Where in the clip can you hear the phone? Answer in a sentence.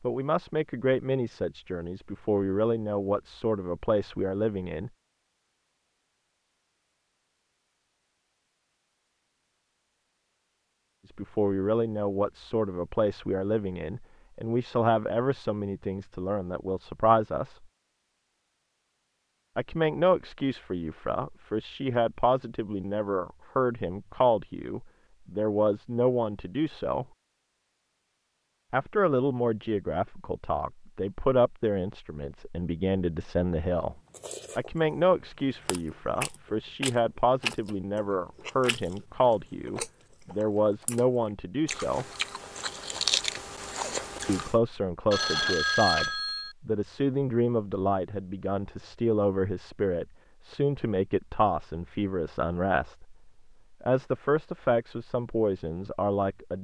You can hear the phone from 45.1 to 46.5 s.